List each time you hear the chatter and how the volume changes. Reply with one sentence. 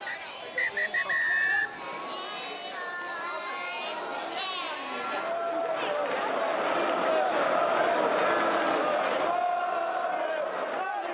The chatter can be heard from 0.0 to 11.0 s, getting louder.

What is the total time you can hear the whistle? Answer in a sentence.
The whistle can be heard for 2 seconds in total.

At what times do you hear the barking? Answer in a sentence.
The barking can't be heard in this clip.